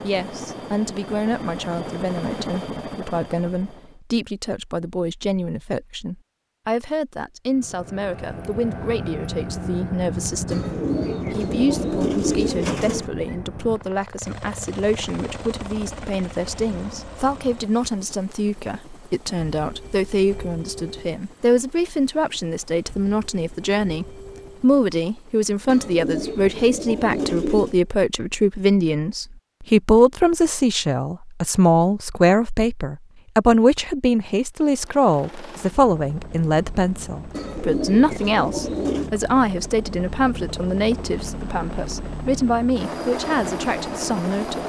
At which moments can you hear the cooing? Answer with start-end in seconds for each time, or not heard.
10.5-13.1, 25.6-27.8, 37.3-39.1.